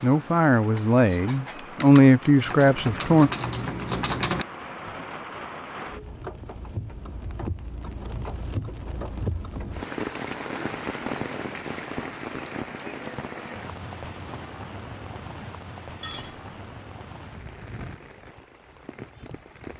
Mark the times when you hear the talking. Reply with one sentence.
The talking can be heard from 0.0 to 3.3 s.